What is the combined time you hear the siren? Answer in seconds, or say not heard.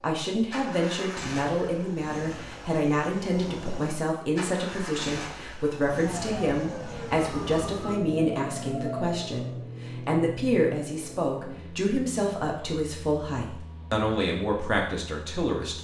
4 s.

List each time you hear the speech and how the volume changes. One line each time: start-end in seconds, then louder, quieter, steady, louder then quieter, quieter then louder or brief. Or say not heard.
0.0-15.8 steady.